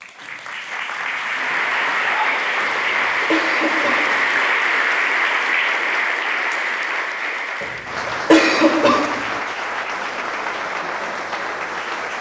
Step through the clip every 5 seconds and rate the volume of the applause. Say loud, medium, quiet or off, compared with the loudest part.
loud, loud, medium.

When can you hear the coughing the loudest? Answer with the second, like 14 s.
8 s.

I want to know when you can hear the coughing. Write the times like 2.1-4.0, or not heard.
2.6-4.4, 7.6-9.4.